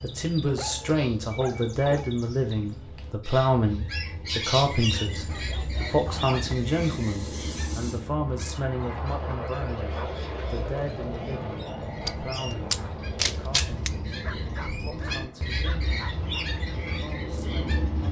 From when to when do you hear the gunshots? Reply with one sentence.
You can hear the gunshots from 12.7 to 13.9 s.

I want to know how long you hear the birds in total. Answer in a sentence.
You can hear the birds for 18 seconds altogether.